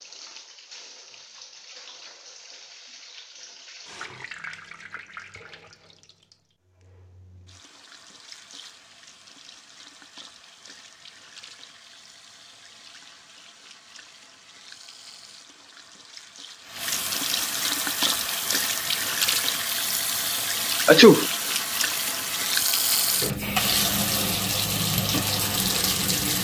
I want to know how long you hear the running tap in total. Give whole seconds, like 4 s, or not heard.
26 s.